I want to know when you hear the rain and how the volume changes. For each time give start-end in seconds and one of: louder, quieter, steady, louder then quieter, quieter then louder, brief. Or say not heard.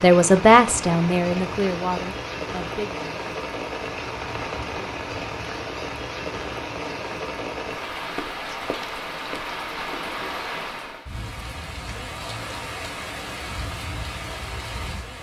0.0-15.1 steady.